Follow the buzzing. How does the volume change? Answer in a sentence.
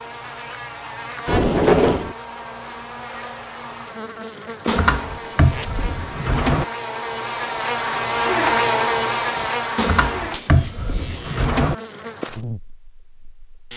The volume of the buzzing goes up, then down.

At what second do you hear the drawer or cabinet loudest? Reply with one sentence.
The volume of the drawer or cabinet peaks at 2 seconds.